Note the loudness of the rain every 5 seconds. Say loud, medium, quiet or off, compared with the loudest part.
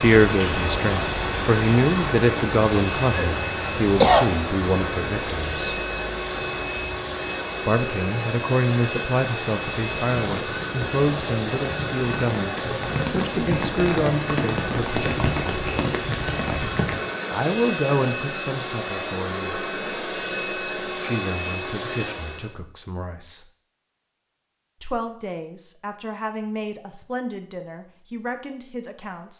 loud, medium, loud, loud, off, off.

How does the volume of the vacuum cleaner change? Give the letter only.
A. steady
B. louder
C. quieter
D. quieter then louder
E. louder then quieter
A.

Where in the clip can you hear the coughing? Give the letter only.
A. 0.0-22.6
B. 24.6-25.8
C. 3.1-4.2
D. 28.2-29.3
C.